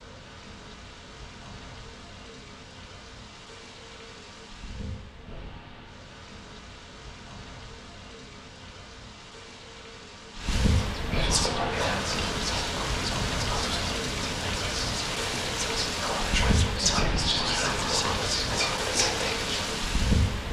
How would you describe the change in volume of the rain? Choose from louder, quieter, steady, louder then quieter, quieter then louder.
louder.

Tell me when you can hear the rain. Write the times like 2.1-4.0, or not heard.
0.0-20.4.